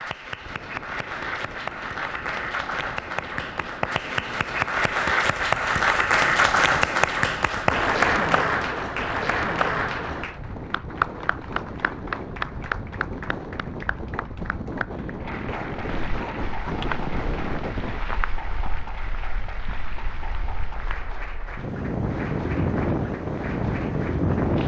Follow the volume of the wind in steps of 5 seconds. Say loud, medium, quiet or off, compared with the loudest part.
quiet, quiet, medium, medium, loud.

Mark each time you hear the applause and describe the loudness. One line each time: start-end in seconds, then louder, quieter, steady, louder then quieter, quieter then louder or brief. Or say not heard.
0.0-24.6 louder then quieter.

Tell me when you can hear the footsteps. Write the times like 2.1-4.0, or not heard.
15.8-21.1.